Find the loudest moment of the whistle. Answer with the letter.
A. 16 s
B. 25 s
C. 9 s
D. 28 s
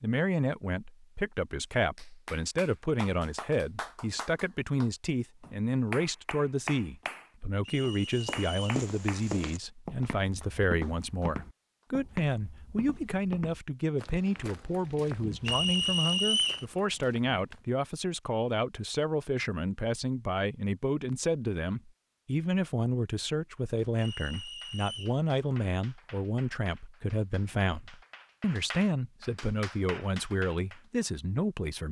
A.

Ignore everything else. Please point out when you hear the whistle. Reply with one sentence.
The whistle can be heard from 7.7 to 8.6 s, from 15.4 to 16.6 s and from 23.9 to 25.2 s.